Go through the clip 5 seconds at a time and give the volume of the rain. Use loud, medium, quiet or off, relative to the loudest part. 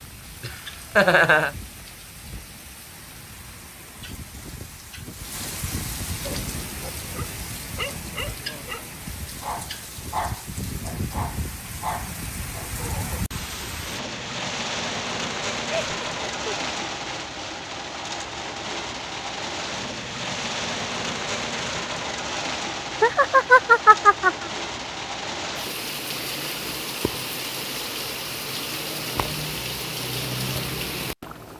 quiet, medium, loud, loud, loud, loud, loud.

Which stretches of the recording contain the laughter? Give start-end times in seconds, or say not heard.
0.4-1.5, 15.8-16.7, 23.0-24.4.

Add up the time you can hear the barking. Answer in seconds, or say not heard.
7 s.